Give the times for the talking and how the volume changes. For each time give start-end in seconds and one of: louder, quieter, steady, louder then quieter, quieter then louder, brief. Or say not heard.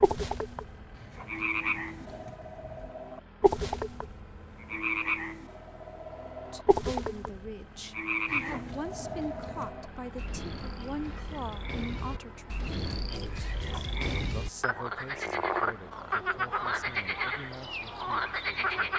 6.5-18.9 quieter.